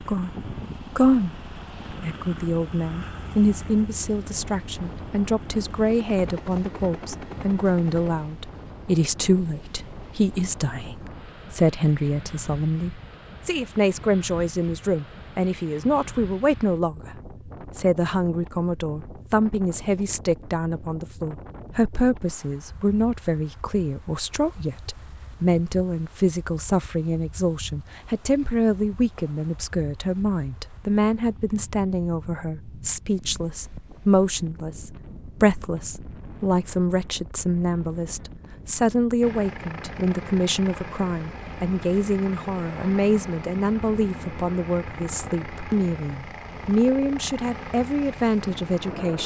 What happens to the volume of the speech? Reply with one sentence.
The volume of the speech stays about the same.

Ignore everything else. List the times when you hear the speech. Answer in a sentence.
You can hear the speech from 0.1 to 49.2 s.